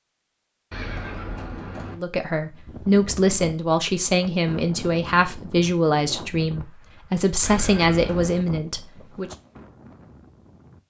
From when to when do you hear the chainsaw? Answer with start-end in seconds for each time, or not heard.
not heard.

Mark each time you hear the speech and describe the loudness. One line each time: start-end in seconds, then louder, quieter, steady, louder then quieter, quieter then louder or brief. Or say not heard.
1.9-9.3 steady.